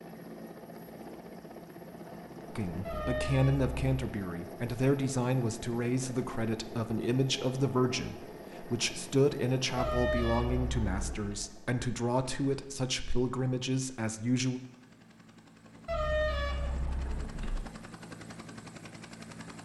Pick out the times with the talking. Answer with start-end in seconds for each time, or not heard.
2.5-14.6.